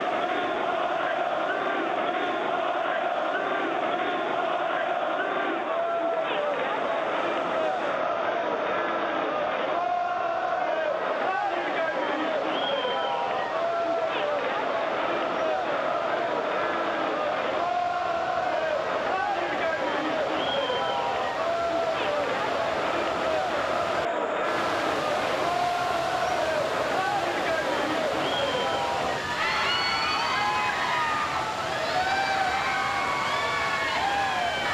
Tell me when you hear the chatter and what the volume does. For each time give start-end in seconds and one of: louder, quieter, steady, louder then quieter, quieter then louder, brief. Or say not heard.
0.0-34.6 steady.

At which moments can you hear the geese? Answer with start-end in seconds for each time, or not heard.
not heard.